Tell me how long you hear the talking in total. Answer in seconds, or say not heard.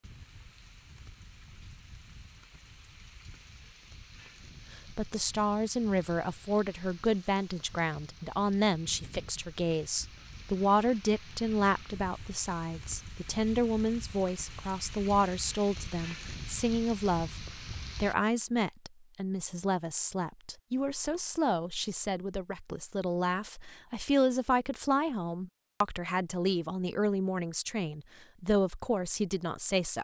25 s.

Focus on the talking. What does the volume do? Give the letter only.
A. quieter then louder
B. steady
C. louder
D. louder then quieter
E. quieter
B.